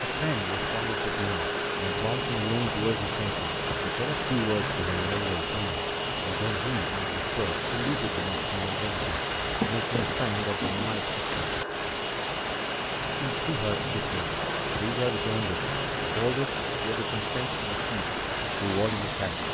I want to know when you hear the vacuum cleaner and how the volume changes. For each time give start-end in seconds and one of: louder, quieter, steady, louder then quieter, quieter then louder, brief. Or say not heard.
0.0-19.4 steady.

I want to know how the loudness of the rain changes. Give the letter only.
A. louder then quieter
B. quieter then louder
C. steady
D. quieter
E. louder
C.